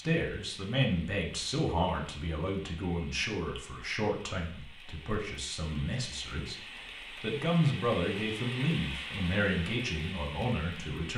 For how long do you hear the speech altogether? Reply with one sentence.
The speech can be heard for 11 seconds in total.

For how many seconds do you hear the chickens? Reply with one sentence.
You can't hear the chickens here.